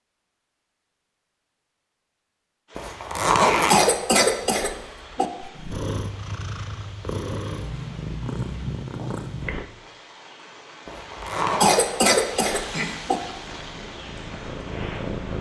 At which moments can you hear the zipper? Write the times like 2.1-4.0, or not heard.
2.8-3.9, 10.8-11.7.